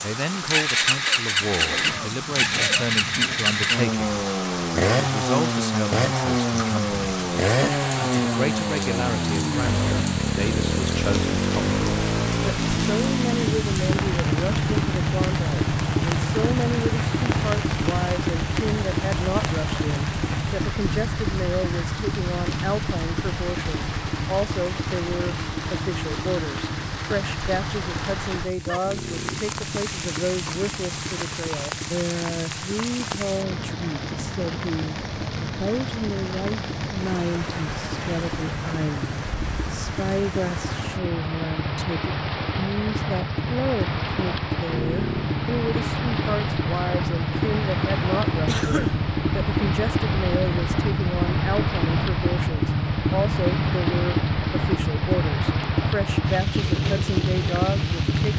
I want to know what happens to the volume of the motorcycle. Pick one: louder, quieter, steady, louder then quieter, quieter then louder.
quieter then louder.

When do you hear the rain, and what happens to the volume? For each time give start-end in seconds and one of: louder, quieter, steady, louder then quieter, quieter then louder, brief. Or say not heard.
0.0-58.3 steady.